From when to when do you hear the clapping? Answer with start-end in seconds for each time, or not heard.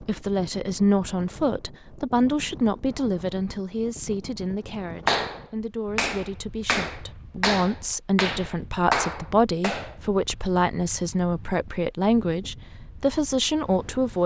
5.0-9.9.